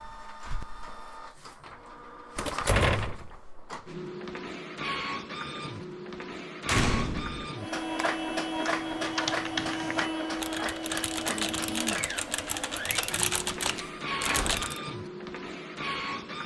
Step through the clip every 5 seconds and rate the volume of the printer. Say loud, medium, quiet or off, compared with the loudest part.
medium, loud, loud, loud.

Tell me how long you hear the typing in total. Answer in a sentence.
You can hear the typing for 6 seconds altogether.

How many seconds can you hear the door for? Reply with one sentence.
The door can be heard for 3 seconds in total.